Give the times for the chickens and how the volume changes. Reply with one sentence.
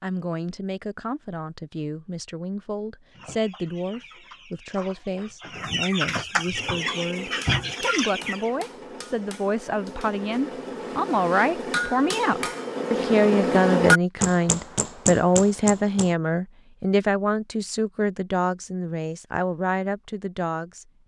You can hear the chickens from 3.1 to 8.5 s, getting louder.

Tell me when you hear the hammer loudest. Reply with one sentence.
The volume of the hammer peaks at 14 seconds.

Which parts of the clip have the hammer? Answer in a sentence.
The hammer can be heard from 6.5 to 16.1 s.